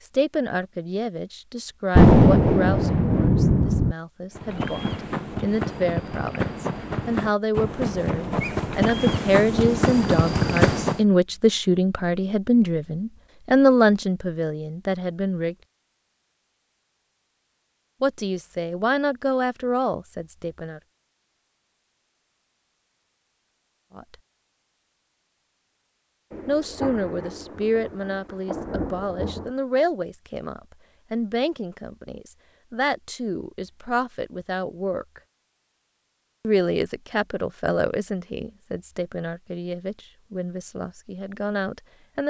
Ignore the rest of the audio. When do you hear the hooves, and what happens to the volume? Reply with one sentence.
You can hear the hooves from 4.3 to 11.1 s, getting louder.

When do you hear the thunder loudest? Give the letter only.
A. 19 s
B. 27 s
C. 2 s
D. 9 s
C.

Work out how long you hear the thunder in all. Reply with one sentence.
You can hear the thunder for 5 seconds altogether.